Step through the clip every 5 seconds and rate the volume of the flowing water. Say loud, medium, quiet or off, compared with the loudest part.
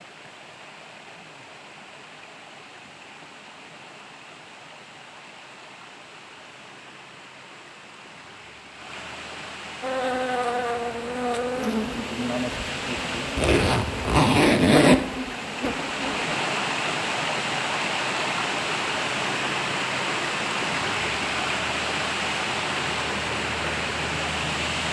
quiet, quiet, medium, loud, loud.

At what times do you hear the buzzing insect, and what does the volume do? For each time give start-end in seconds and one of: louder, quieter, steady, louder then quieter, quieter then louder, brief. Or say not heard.
9.8-16.3 quieter then louder.